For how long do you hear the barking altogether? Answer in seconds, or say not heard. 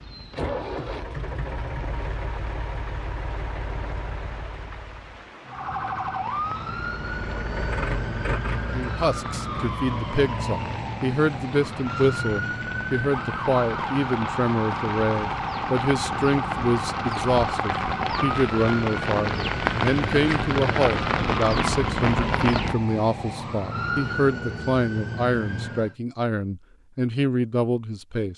not heard.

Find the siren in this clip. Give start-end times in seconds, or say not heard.
5.5-25.9.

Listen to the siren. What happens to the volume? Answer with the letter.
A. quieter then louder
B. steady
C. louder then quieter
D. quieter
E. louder
B.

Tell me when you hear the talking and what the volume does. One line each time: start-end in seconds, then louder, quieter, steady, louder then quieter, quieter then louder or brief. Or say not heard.
8.7-28.3 steady.